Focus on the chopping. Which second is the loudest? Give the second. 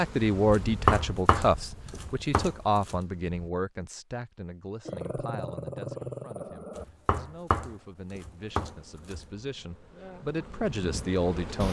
1 s.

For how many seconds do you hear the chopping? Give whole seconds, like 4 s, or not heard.
5 s.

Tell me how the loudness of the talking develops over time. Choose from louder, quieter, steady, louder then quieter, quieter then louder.
quieter then louder.